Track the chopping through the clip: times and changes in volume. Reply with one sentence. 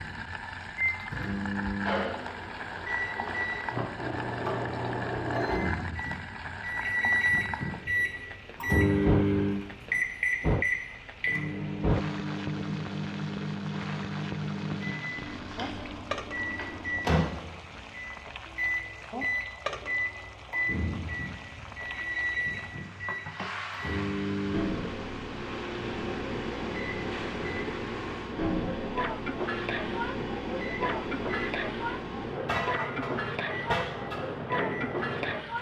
You can't hear the chopping here.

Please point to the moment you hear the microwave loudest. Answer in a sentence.
The volume of the microwave peaks at 9 seconds.